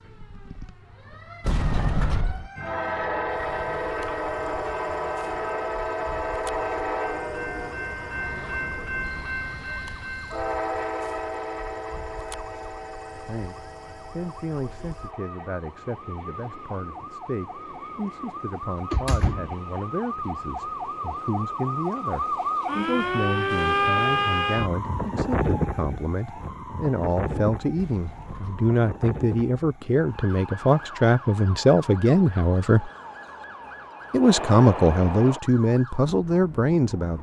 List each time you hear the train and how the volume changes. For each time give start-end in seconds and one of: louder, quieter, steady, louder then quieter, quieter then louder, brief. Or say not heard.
2.5-22.9 quieter
30.4-35.4 louder.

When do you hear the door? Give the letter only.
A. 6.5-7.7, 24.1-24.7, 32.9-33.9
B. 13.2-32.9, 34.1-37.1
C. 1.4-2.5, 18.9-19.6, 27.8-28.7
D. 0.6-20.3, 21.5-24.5
C.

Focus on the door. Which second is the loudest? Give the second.
2 s.